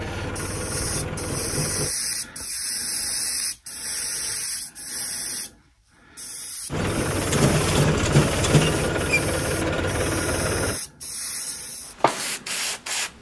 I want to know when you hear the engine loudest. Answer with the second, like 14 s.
8 s.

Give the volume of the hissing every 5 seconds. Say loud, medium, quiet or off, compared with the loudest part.
loud, medium, loud.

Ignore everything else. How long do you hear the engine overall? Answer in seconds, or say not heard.
6 s.